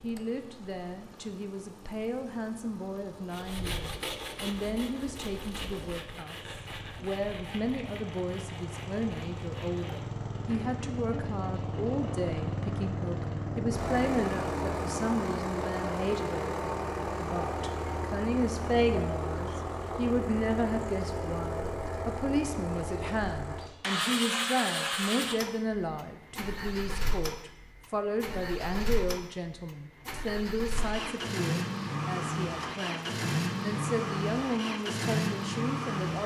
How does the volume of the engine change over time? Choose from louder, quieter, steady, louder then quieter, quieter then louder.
louder.